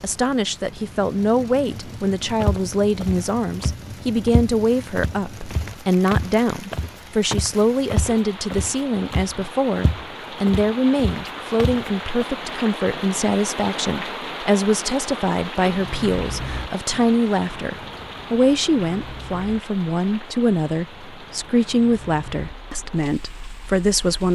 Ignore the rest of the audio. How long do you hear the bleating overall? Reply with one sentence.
The bleating can't be heard in this clip.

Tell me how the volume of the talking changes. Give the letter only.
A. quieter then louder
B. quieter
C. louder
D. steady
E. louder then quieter
D.